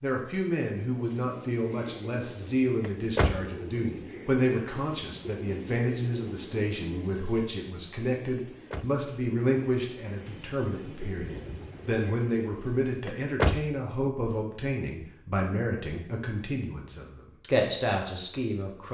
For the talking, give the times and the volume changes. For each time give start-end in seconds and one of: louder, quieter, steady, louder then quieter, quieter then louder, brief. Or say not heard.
0.0-18.8 steady.